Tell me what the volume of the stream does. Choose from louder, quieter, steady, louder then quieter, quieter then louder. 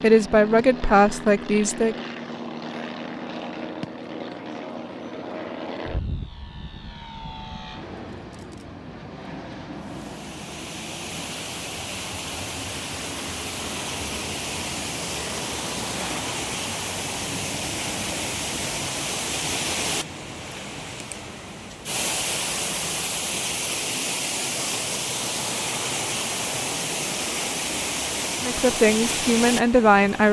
louder.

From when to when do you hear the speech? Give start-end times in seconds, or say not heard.
0.0-1.9, 28.4-30.2.